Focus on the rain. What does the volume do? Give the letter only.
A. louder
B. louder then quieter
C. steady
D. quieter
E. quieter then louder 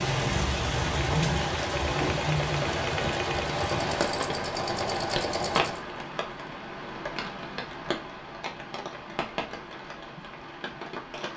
D.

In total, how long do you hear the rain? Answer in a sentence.
You can hear the rain for 11 seconds altogether.